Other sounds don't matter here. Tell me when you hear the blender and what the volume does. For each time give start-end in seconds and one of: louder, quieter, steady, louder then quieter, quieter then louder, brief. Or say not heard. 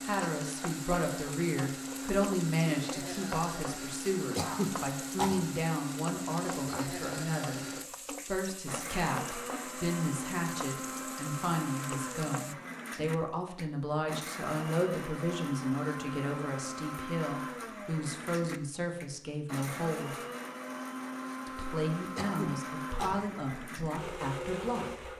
0.0-25.1 steady.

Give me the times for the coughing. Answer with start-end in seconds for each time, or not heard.
4.3-5.5, 22.1-23.2.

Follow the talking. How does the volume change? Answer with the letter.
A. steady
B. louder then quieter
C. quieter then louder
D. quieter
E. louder
A.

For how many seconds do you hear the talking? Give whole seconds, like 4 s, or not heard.
24 s.